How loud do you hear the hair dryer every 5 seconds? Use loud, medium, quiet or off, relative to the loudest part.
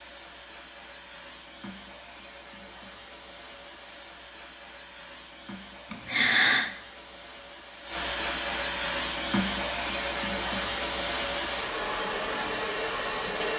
quiet, loud, loud.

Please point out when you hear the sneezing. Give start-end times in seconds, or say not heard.
5.9-6.7.